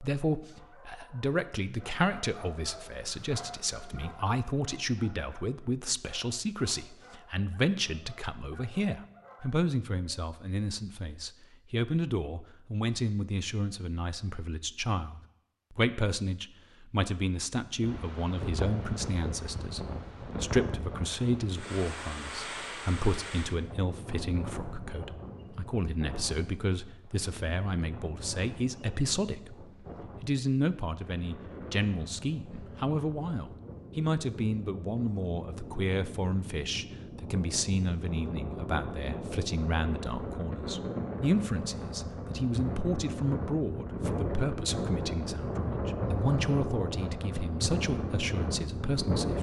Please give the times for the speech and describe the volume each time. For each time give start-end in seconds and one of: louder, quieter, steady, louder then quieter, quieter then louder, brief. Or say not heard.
0.0-49.3 steady.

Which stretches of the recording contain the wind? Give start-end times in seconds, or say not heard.
17.8-49.3.